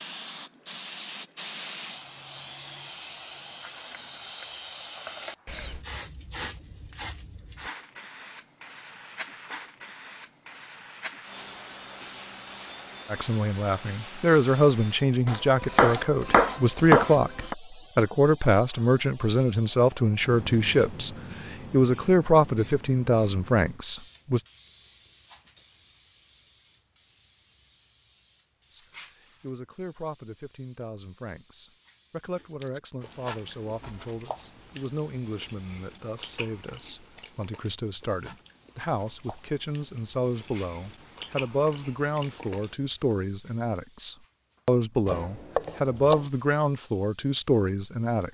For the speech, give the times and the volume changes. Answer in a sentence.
You can hear the speech from 13.1 to 24.4 s, at a steady volume; and from 28.7 to 48.2 s, getting louder.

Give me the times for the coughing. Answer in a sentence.
The coughing can't be heard in this clip.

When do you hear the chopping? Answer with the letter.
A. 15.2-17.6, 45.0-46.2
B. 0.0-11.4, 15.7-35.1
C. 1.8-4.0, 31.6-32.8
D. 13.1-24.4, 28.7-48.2
A.